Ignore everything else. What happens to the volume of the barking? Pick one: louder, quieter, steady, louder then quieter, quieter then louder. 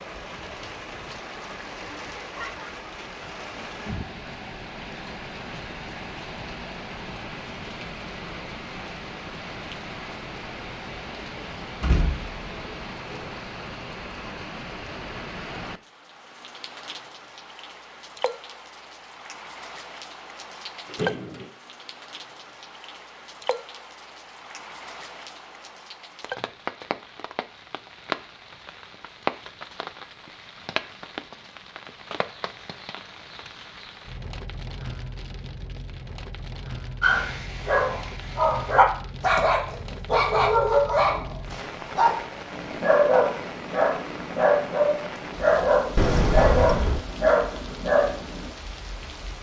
steady.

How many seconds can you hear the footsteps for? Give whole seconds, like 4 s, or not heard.
not heard.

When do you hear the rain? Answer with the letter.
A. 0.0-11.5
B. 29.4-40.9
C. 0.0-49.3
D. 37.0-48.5
C.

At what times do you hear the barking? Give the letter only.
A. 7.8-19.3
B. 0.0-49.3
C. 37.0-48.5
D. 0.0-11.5
C.